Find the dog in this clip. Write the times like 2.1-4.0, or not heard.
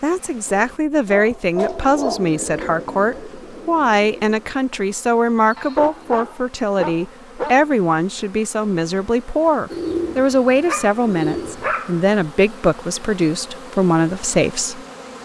0.5-2.2, 5.5-7.5, 10.4-12.0.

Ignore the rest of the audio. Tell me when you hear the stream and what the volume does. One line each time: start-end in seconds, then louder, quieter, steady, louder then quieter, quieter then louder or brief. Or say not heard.
not heard.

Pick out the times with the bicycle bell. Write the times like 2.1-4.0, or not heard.
not heard.